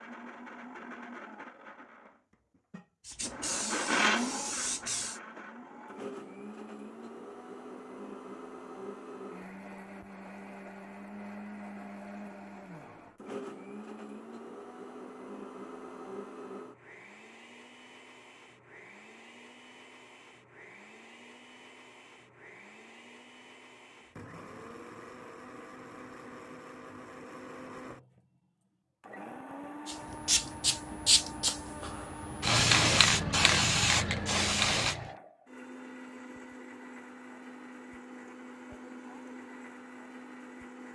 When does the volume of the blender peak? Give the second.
4 s.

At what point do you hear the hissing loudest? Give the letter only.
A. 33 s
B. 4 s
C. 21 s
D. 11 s
A.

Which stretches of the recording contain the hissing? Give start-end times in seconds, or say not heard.
3.0-5.2, 29.9-35.1.